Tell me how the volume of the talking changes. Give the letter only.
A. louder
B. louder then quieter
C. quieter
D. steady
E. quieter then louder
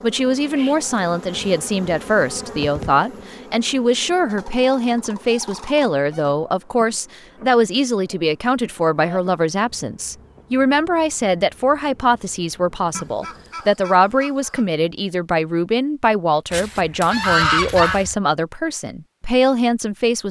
D.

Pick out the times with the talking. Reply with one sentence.
You can hear the talking from 0.0 to 20.2 s.